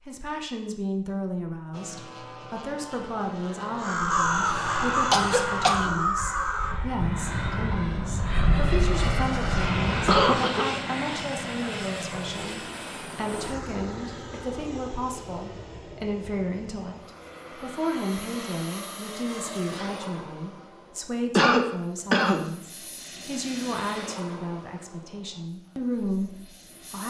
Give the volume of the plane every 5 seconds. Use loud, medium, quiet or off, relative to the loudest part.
medium, loud, loud, medium, medium, quiet.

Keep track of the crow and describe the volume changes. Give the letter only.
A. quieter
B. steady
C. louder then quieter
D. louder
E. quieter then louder
A.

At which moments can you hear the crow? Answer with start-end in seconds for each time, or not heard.
3.8-10.4.